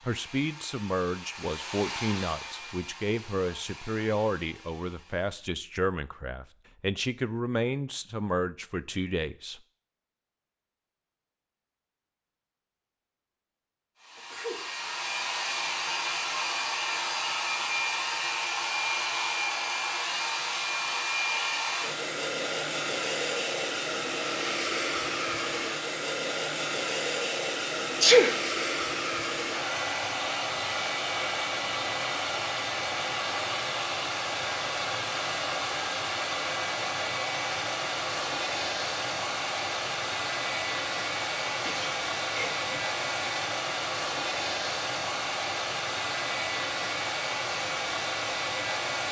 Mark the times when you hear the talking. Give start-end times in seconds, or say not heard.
0.1-9.6.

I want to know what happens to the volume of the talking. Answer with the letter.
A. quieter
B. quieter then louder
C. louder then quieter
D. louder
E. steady
E.